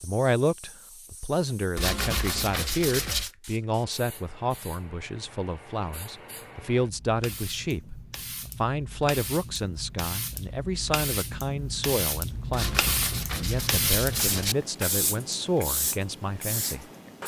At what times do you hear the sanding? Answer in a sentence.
The sanding can be heard from 1.8 to 3.3 s and from 12.5 to 14.6 s.